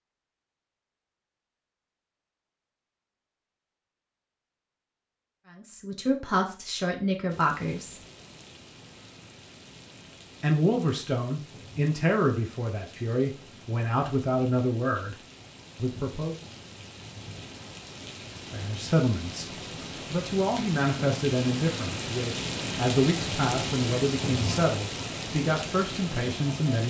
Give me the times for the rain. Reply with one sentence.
You can hear the rain from 7.2 to 26.8 s.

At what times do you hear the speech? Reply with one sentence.
You can hear the speech from 5.5 to 8.0 s, from 10.4 to 16.4 s and from 18.5 to 26.8 s.